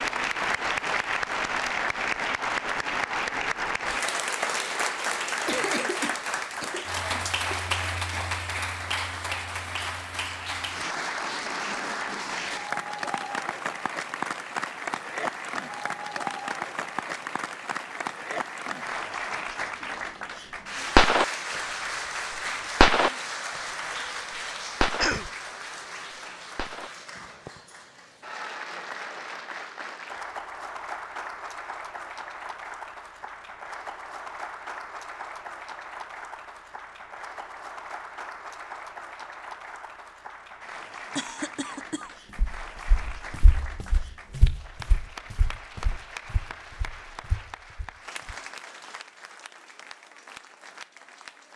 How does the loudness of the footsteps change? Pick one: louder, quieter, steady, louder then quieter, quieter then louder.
louder then quieter.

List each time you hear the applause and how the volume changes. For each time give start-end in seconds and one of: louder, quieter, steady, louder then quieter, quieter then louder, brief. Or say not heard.
0.0-51.5 quieter.